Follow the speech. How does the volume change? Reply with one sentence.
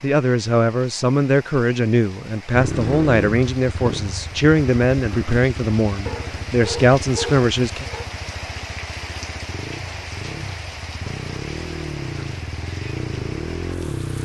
The volume of the speech stays about the same.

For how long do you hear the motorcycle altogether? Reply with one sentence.
The motorcycle can be heard for 12 seconds in total.